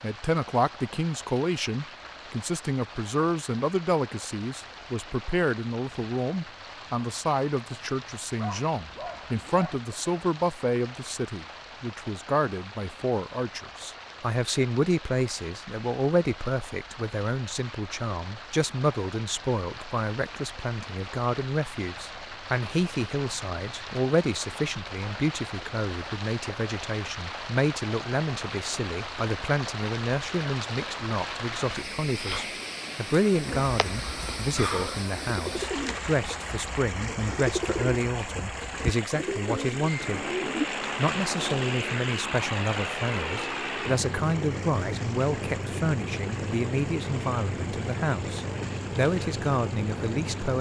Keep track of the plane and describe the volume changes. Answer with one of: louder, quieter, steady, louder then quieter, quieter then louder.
steady.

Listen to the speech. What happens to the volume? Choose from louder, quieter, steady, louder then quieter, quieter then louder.
steady.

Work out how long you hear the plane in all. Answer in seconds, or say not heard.
11 s.